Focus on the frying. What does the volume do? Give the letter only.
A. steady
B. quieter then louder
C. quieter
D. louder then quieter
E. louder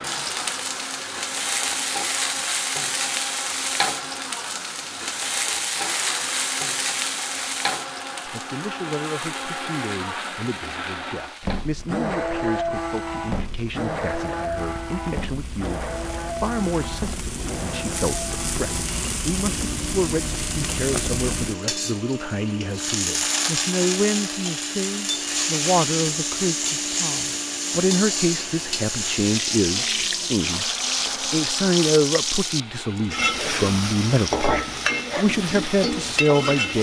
B.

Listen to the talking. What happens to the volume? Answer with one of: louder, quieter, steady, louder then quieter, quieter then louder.
louder.